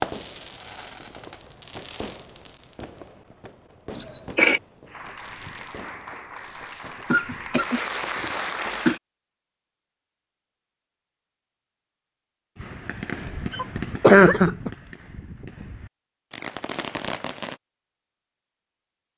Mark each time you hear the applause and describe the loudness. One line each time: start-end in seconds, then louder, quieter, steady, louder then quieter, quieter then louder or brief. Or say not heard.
4.8-9.0 louder.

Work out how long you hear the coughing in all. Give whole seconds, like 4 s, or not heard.
4 s.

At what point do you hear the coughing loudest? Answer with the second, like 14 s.
14 s.